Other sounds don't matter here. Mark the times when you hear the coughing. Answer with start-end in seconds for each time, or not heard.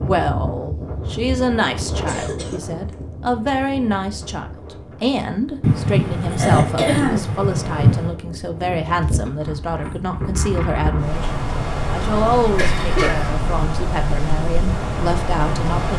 2.0-2.6, 5.6-8.1, 12.6-13.3.